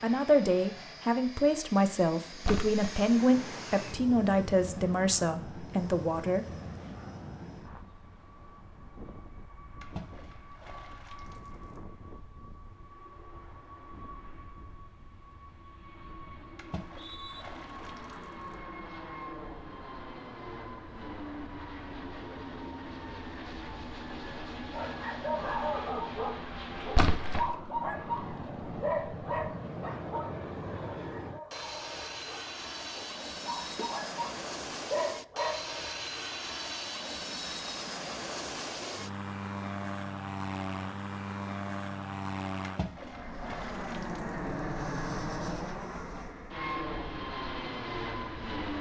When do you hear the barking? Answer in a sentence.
You can hear the barking from 24.7 to 35.7 s.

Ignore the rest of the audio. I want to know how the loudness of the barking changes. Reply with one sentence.
The volume of the barking goes down, then up.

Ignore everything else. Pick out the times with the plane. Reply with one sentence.
You can hear the plane from 0.0 to 48.7 s.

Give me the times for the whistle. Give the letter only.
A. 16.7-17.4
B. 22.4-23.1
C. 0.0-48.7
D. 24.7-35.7
A.